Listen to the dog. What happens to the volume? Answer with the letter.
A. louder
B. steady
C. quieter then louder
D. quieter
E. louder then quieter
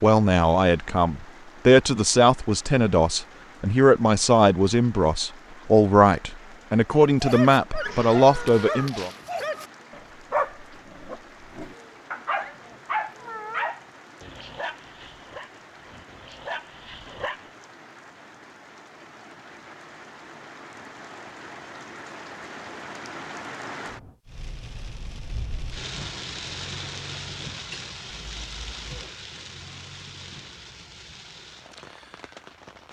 D.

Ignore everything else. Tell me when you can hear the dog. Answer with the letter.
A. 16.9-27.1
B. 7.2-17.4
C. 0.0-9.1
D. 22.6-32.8
B.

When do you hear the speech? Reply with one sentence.
You can hear the speech from 0.0 to 9.1 s.